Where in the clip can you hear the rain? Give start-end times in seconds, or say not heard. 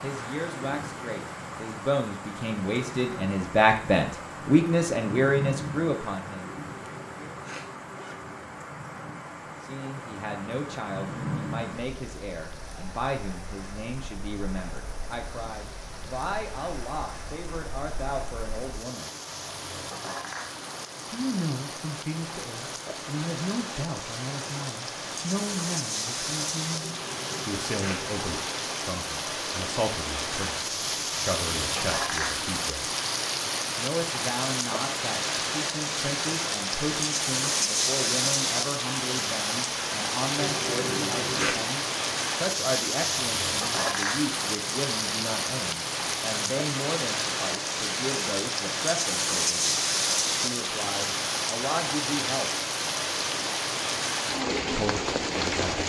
0.0-55.8.